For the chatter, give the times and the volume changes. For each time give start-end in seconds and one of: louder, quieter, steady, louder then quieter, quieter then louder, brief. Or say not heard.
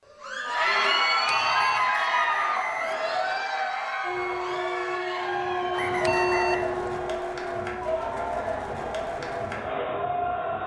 0.1-10.6 quieter.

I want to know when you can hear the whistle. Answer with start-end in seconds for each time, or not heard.
1.6-3.5, 5.7-6.7.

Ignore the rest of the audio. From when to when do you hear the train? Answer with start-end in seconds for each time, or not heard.
4.0-10.6.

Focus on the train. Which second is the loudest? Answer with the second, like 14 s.
6 s.